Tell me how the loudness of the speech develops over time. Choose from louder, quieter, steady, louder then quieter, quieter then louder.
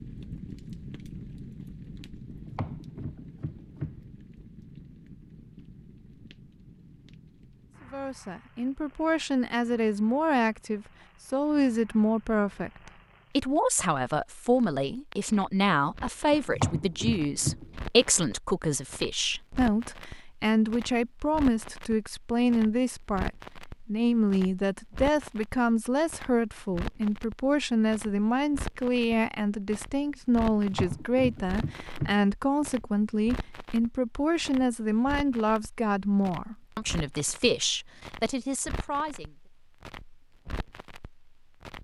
steady.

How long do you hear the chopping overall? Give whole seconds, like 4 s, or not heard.
5 s.